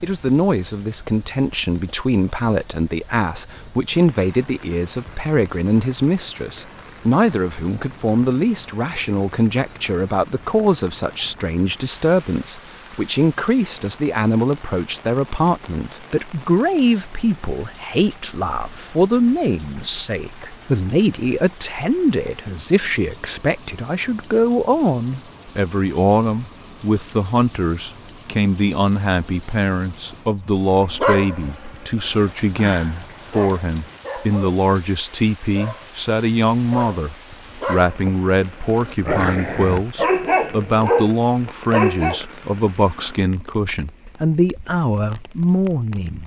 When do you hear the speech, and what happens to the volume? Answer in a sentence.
The speech can be heard from 0.0 to 46.2 s, at a steady volume.